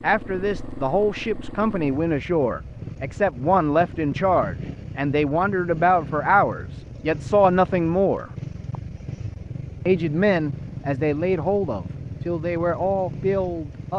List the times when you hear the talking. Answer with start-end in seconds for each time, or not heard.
0.0-8.2, 9.8-13.9.